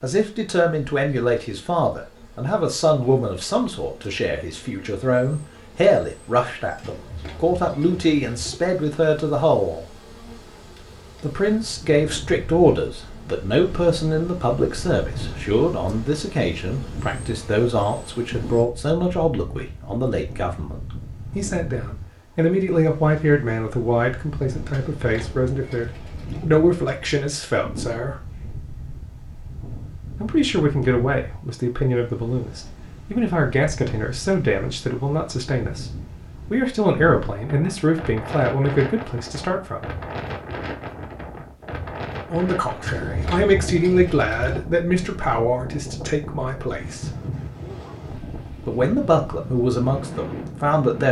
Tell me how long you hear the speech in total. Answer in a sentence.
You can hear the speech for 44 seconds altogether.